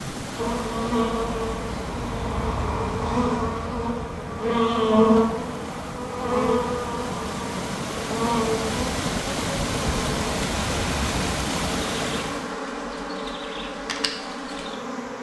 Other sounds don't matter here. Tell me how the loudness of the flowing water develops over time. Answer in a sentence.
The loudness of the flowing water goes up.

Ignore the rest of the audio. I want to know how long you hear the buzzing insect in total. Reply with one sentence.
The buzzing insect can be heard for 15 seconds in total.